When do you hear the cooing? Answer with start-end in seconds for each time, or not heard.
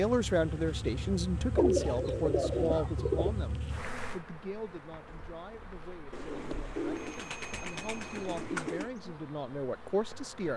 1.6-3.4, 6.1-8.9.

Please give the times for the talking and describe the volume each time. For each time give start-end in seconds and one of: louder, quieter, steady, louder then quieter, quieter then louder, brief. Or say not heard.
0.0-10.5 quieter then louder.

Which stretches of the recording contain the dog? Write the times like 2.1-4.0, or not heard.
not heard.